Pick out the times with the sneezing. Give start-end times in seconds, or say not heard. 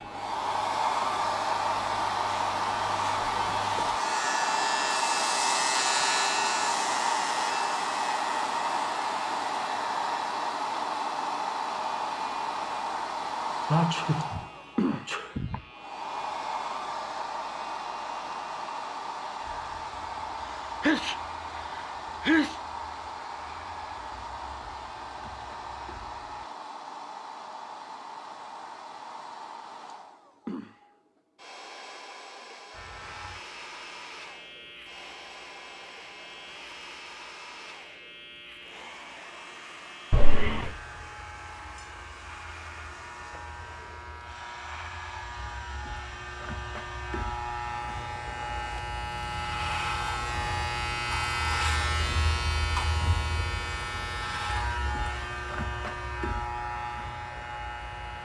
13.7-15.6, 20.6-22.6, 40.1-40.7.